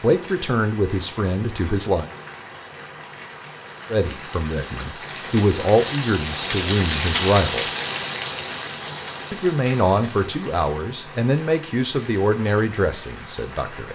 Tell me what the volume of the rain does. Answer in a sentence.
The volume of the rain goes up, then down.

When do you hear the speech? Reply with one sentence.
The speech can be heard from 0.0 to 2.0 s, from 3.9 to 7.7 s and from 9.3 to 13.9 s.